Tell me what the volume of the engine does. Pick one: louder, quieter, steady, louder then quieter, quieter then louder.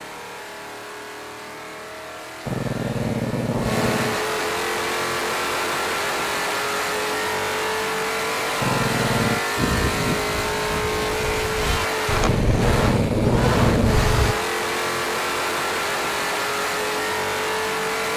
louder.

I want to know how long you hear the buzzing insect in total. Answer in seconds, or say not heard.
not heard.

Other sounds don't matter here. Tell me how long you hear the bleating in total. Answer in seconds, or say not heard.
5 s.